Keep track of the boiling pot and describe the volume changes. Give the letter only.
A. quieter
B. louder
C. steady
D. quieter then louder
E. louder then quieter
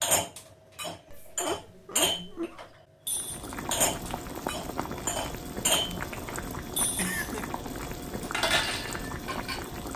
C.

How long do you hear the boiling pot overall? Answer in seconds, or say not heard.
7 s.